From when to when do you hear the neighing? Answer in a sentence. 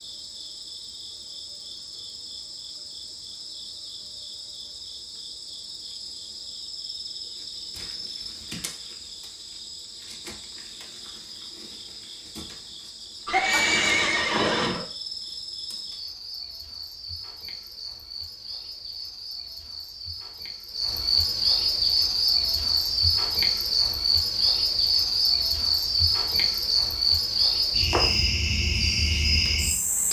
You can hear the neighing from 13.2 to 14.8 s.